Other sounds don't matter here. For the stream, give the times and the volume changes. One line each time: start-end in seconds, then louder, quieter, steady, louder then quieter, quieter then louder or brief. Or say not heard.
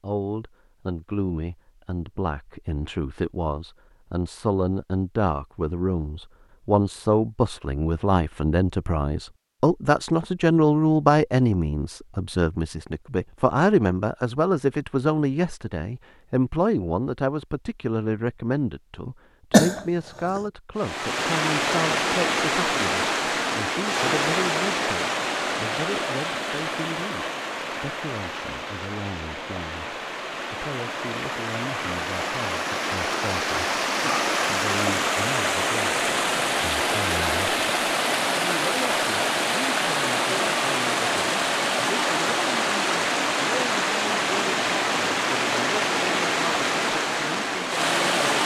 20.8-48.4 quieter then louder.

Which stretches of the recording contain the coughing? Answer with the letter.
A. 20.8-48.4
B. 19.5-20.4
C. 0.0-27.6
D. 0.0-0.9
B.